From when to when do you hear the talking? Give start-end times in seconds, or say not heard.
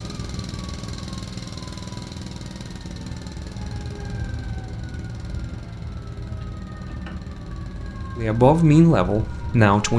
8.2-9.9.